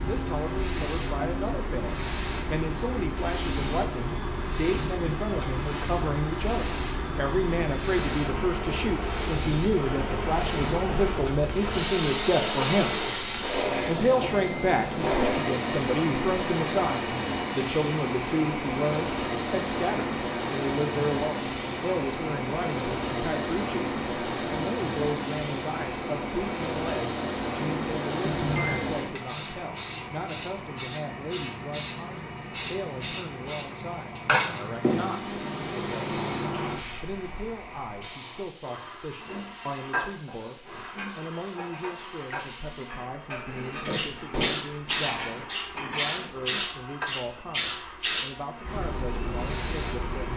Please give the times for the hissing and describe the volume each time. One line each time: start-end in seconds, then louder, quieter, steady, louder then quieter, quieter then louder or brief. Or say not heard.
0.0-50.3 steady.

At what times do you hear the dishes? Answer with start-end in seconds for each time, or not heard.
39.2-47.1.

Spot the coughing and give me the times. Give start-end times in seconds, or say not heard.
not heard.